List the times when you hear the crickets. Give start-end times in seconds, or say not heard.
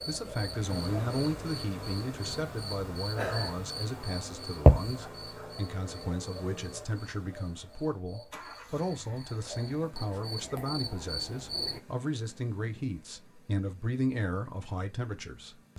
0.0-11.8.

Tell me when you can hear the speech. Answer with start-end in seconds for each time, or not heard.
0.1-15.7.